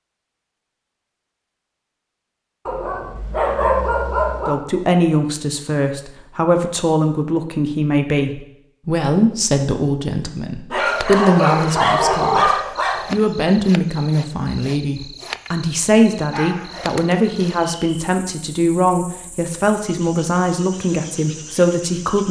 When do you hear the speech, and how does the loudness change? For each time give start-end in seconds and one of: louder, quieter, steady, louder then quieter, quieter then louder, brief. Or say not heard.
4.5-22.2 steady.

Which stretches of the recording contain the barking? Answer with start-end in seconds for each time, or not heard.
2.6-4.5, 10.7-13.0, 16.3-17.6.